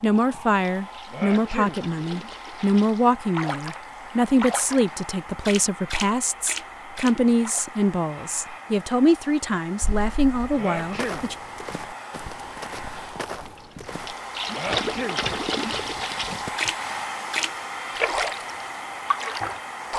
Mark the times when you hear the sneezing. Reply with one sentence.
The sneezing can be heard from 1.1 to 1.8 s, from 10.6 to 11.2 s and from 14.6 to 15.2 s.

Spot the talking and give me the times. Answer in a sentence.
You can hear the talking from 0.0 to 11.3 s.